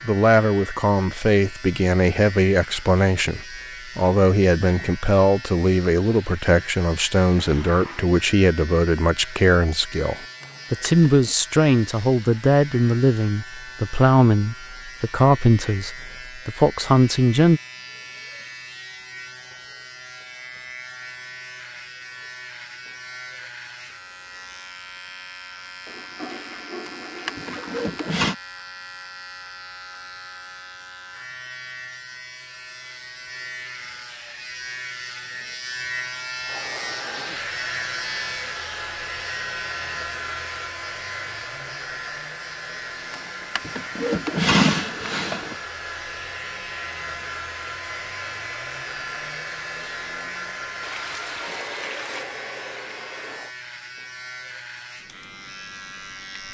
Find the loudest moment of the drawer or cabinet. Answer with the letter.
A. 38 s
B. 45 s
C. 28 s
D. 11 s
B.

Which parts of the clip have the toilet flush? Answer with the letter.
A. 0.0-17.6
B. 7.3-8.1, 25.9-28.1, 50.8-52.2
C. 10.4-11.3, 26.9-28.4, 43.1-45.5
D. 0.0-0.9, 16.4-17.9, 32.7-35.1
B.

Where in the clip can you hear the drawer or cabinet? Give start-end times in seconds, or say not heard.
10.4-11.3, 26.9-28.4, 43.1-45.5.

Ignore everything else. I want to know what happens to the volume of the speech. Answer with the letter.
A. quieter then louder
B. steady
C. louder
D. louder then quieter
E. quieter
B.